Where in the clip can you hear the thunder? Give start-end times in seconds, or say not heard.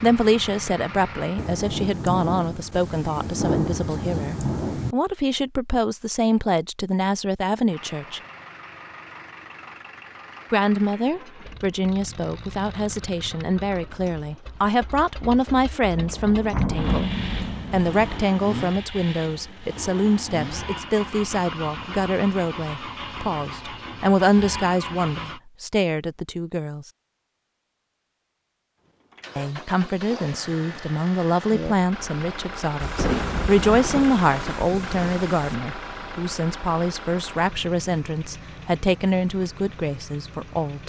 1.4-5.0, 15.9-18.2, 32.8-35.5.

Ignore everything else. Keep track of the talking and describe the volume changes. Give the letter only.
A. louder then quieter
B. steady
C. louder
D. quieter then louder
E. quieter
B.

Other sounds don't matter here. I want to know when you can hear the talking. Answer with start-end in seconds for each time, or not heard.
0.0-8.2, 10.5-17.1, 17.7-26.9, 29.4-40.8.